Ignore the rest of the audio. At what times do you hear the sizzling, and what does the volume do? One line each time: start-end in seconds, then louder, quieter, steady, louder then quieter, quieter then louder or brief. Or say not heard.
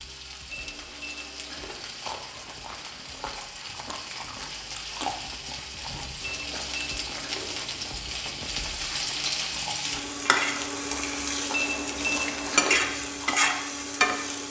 0.0-14.4 louder.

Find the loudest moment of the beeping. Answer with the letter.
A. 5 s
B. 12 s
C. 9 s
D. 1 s
B.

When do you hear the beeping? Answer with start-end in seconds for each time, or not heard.
0.5-1.8, 6.2-7.7, 11.5-12.8.